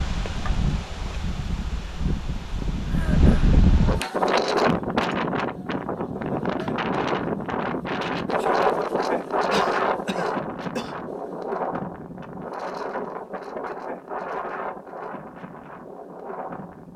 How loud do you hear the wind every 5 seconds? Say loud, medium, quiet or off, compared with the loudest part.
loud, loud, medium, quiet.